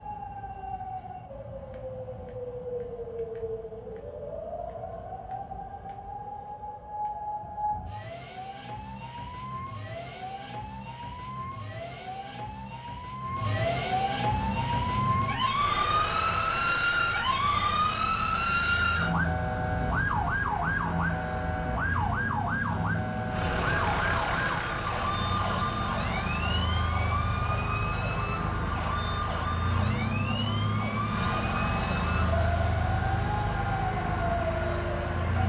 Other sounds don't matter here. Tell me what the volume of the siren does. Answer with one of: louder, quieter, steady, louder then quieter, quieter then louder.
louder then quieter.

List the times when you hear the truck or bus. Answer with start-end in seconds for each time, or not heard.
14.3-35.4.